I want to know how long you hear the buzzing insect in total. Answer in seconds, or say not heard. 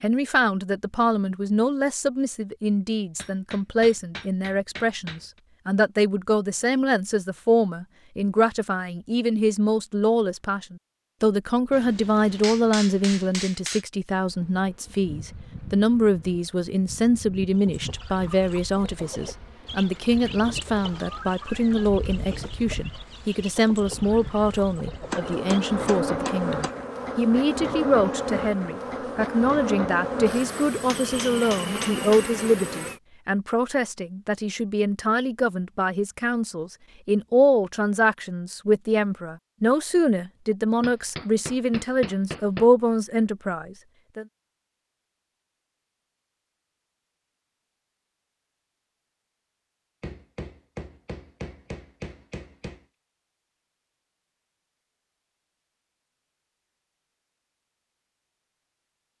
19 s.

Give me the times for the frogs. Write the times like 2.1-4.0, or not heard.
not heard.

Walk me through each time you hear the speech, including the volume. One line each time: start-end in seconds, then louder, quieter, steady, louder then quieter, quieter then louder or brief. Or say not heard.
0.0-44.2 steady.